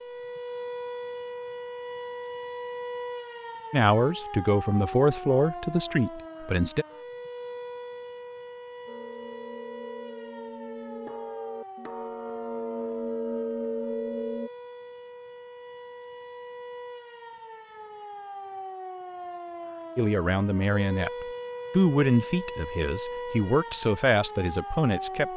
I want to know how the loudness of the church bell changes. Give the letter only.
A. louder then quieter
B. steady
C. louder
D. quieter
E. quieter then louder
C.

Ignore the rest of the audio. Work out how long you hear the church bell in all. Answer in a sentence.
The church bell can be heard for 6 seconds in total.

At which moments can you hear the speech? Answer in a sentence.
The speech can be heard from 3.7 to 6.8 s and from 19.9 to 25.3 s.